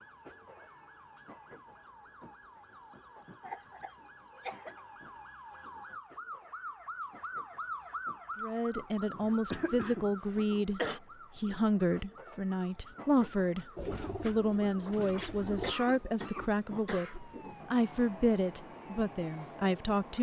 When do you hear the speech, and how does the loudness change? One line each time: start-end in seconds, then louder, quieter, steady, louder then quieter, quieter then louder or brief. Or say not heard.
8.4-20.1 steady.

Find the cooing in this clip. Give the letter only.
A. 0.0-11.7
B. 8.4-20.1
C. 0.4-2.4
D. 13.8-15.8
D.